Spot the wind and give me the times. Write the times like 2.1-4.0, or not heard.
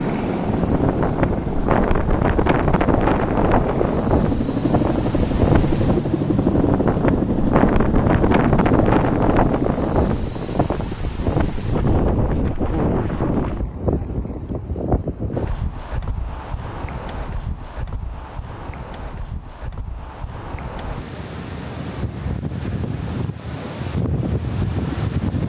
0.0-25.4.